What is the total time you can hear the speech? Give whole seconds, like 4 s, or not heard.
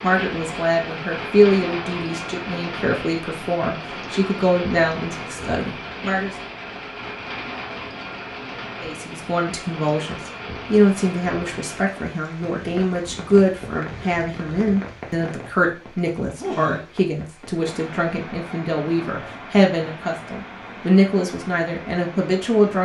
20 s.